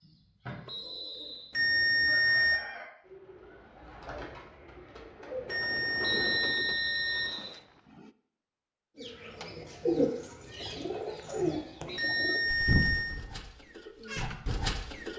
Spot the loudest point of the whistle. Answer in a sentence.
The loudest moment of the whistle is at 6 seconds.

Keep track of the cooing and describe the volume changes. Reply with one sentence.
The volume of the cooing goes up.